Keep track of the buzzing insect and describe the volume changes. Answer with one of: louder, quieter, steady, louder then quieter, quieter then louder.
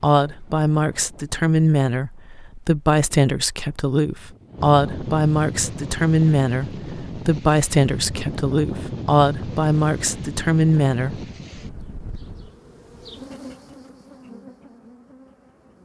louder then quieter.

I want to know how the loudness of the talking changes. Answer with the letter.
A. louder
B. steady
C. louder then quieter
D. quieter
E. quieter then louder
B.